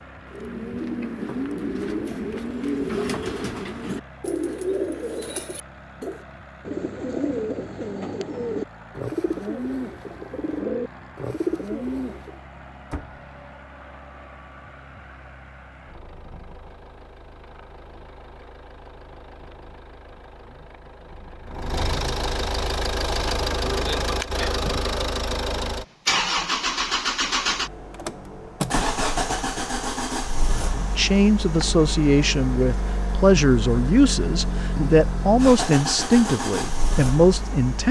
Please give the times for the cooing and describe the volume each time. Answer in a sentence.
You can hear the cooing from 0.3 to 12.4 s, at a steady volume.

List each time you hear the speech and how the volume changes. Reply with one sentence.
The speech can be heard from 30.9 to 37.8 s, at a steady volume.